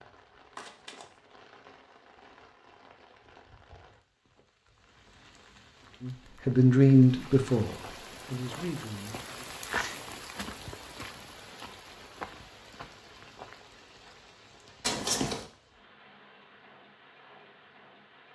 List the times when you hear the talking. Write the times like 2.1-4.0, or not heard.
6.0-9.4.